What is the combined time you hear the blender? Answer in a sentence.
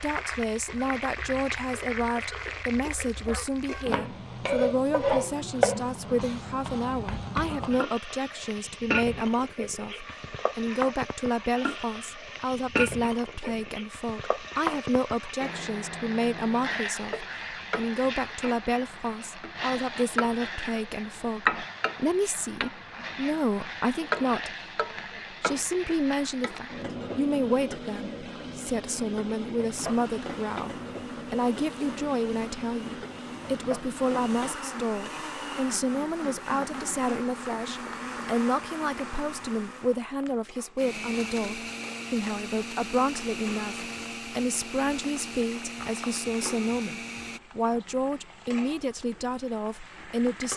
You can hear the blender for 18 seconds altogether.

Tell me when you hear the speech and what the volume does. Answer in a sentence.
You can hear the speech from 0.0 to 24.6 s, at a steady volume; and from 25.3 to 50.5 s, at a steady volume.